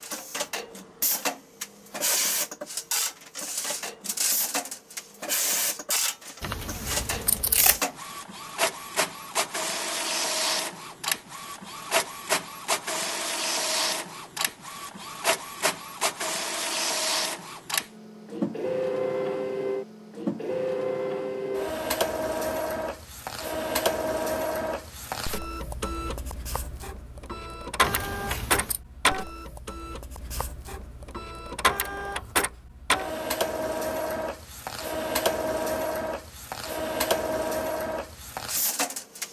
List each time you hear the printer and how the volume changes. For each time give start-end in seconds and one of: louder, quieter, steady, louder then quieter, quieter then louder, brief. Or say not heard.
0.0-39.2 steady.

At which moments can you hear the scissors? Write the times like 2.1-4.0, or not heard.
6.4-7.8, 27.8-28.8.